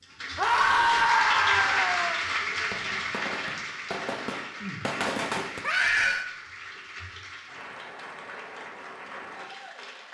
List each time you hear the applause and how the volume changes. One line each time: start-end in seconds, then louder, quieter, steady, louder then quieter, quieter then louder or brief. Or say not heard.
0.0-10.0 quieter.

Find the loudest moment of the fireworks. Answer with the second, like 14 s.
5 s.